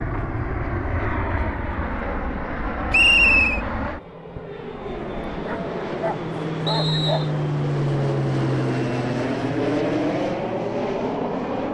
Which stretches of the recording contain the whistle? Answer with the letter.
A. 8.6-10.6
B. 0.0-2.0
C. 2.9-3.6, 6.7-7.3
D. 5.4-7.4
C.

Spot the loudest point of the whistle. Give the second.
3 s.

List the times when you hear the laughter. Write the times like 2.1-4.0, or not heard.
not heard.